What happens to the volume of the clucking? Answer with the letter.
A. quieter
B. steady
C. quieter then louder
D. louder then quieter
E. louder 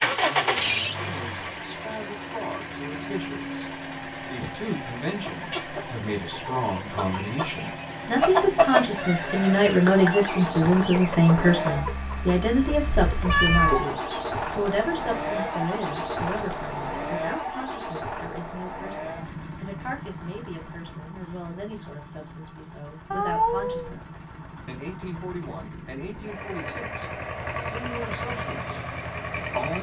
D.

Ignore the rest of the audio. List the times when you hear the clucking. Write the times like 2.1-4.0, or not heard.
5.0-14.2.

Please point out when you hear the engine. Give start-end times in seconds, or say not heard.
0.0-29.7.